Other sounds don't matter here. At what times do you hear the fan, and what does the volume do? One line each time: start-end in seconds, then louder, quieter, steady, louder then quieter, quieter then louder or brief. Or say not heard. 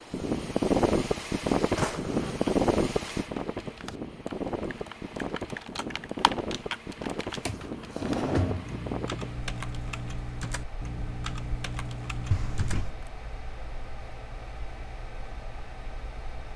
0.0-16.5 quieter.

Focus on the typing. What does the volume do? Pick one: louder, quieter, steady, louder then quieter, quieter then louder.
louder.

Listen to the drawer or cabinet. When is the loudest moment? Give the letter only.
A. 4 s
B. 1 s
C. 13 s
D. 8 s
D.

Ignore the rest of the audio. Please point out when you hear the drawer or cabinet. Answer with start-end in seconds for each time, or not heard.
1.8-2.5, 7.5-8.8, 12.3-12.9.